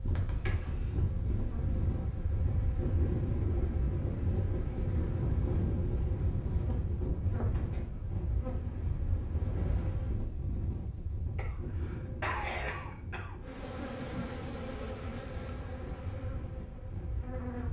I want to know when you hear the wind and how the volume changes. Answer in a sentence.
You can hear the wind from 0.0 to 17.6 s, getting quieter.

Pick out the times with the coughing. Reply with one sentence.
The coughing can be heard from 0.1 to 1.0 s and from 11.3 to 13.3 s.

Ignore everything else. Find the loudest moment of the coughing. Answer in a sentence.
The loudest moment of the coughing is at 12 seconds.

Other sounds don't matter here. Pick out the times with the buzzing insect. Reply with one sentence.
You can hear the buzzing insect from 0.0 to 10.2 s and from 13.4 to 17.6 s.